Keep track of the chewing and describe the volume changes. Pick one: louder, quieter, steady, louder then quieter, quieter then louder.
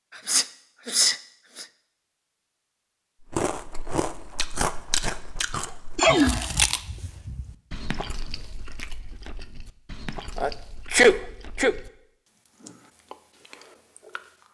quieter.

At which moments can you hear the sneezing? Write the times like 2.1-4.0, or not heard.
0.1-1.6, 6.0-6.5, 10.3-11.8.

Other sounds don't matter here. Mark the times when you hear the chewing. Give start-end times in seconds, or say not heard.
3.3-14.4.